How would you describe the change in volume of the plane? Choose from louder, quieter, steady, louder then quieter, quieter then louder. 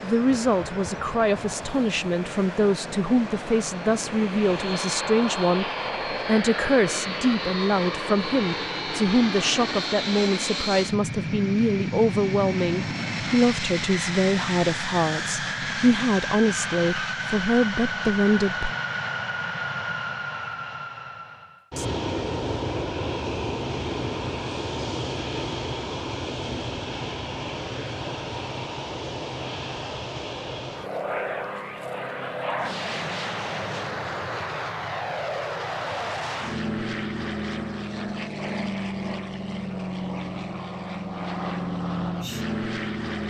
steady.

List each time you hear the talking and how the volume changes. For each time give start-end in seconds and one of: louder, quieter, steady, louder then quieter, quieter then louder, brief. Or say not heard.
0.0-18.8 steady.